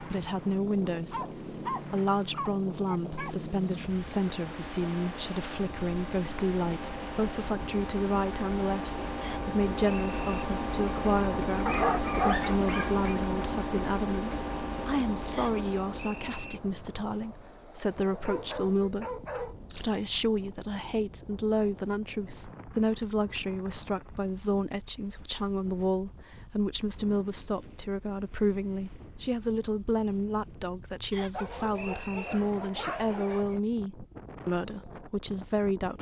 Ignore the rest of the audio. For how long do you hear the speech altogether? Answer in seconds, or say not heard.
36 s.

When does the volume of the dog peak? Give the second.
12 s.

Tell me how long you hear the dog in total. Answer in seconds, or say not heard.
8 s.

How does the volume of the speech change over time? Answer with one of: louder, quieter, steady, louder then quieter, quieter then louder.
steady.